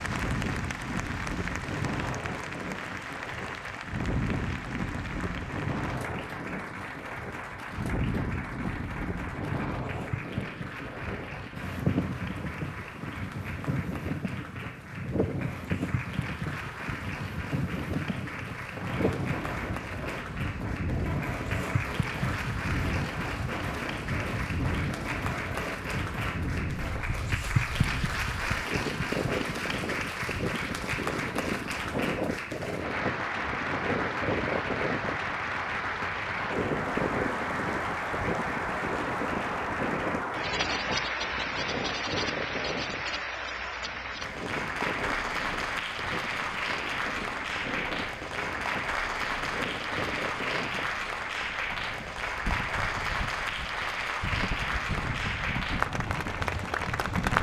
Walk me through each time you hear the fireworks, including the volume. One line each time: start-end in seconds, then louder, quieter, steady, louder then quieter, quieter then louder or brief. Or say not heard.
18.7-27.1 steady.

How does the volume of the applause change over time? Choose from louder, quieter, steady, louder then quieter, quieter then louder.
louder.